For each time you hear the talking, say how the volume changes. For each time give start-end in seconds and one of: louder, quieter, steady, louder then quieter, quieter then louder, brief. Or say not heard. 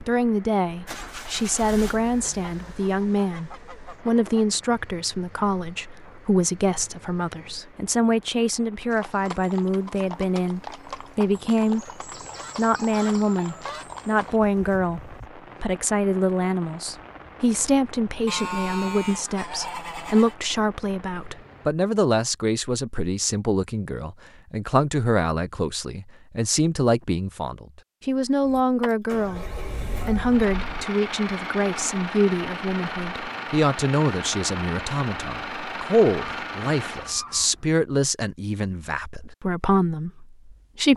0.1-11.8 steady
12.6-40.9 steady.